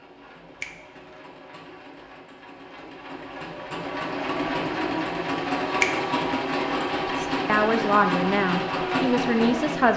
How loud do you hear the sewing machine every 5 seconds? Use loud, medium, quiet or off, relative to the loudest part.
medium, loud.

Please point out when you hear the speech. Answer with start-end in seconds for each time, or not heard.
7.0-9.9.